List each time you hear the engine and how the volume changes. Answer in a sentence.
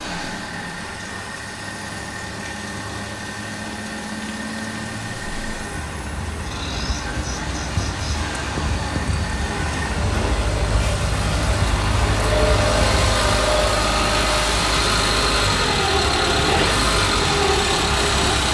You can hear the engine from 0.0 to 18.4 s, getting louder.